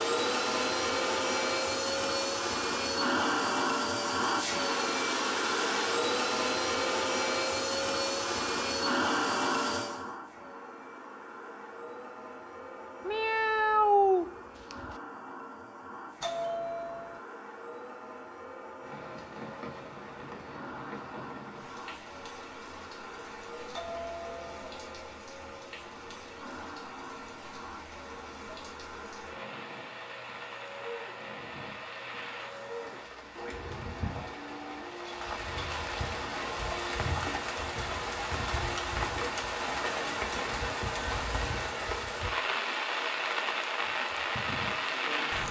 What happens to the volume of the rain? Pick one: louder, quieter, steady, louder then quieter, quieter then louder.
louder.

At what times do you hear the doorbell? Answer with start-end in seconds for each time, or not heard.
16.2-17.2, 23.7-24.8.